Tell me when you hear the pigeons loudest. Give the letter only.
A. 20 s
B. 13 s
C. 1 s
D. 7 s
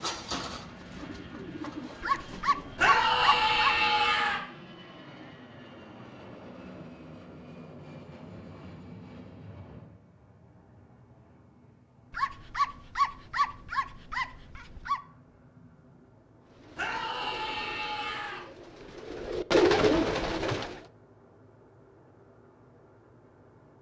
A.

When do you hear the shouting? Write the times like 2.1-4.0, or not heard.
2.8-4.4, 16.8-18.4.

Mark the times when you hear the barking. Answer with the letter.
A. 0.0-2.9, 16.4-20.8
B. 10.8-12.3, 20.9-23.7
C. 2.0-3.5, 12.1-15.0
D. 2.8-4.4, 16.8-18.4
C.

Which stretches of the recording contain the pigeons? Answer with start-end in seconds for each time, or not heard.
0.0-2.9, 16.4-20.8.